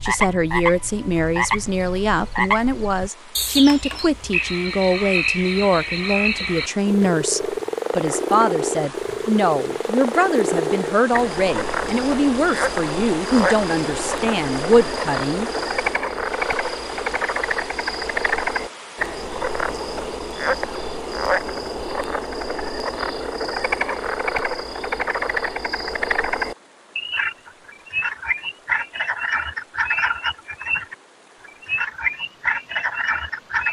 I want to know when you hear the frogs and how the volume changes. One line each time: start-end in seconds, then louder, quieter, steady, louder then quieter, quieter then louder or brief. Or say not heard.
0.0-33.6 steady.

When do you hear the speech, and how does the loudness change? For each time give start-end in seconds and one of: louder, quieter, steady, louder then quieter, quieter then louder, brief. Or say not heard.
0.0-15.5 steady.